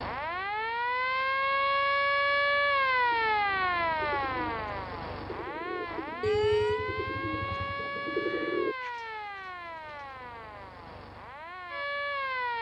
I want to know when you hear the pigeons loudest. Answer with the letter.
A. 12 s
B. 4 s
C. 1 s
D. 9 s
D.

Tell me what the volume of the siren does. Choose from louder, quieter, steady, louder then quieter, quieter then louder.
quieter.